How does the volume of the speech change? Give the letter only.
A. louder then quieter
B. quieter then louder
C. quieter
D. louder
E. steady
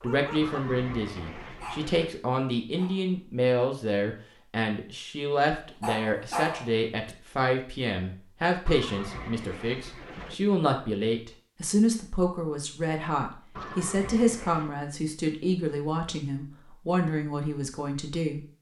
E.